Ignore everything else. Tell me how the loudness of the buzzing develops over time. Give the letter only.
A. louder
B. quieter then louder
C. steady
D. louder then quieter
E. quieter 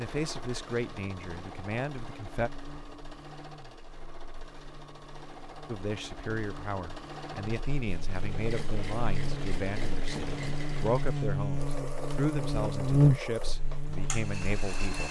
A.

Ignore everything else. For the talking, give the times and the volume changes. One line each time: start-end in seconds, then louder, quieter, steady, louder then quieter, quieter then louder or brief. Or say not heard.
0.0-2.5 brief
5.7-15.0 steady.